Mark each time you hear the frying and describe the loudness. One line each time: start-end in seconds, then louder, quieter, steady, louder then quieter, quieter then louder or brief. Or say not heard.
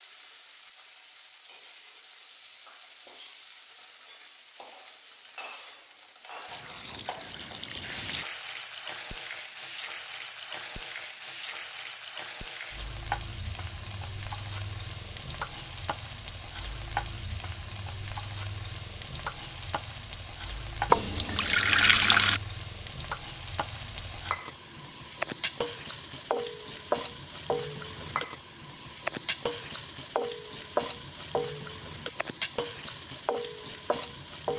0.0-34.5 louder.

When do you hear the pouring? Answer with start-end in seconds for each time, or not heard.
6.5-8.2, 20.9-22.4.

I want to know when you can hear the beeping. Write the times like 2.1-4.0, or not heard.
not heard.